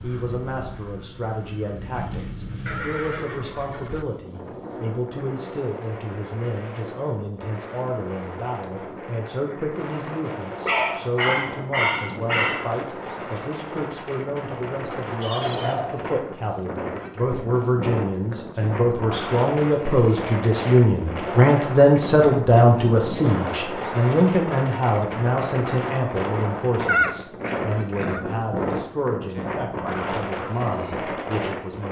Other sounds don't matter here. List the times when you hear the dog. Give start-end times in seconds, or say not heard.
10.7-12.7.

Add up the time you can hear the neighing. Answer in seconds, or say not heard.
4 s.